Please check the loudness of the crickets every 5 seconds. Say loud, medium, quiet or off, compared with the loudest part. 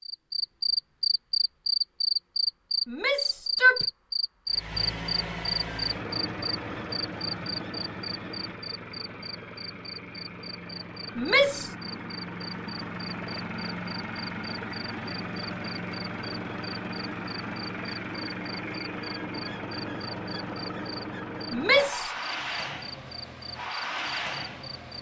loud, medium, quiet, quiet, quiet.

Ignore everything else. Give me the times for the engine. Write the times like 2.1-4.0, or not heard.
4.5-24.9.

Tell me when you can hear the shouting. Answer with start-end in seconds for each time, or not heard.
2.9-3.9, 11.2-11.8, 21.5-22.1.